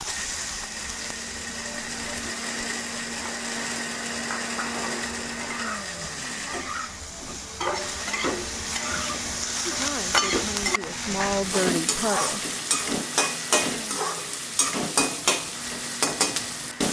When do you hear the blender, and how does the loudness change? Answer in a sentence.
You can hear the blender from 0.1 to 16.8 s, getting quieter.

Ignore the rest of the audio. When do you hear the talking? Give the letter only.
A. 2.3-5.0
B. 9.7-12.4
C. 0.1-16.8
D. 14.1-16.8
B.